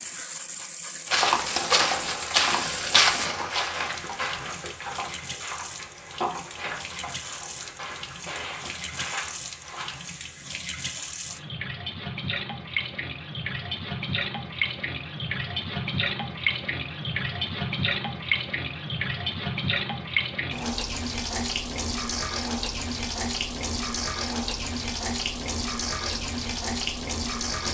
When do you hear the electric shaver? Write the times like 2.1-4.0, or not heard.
not heard.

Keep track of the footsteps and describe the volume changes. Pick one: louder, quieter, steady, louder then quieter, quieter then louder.
quieter.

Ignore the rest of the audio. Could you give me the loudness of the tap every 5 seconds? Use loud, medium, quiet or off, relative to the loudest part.
medium, medium, loud, loud, loud, loud.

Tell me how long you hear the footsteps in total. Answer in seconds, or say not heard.
9 s.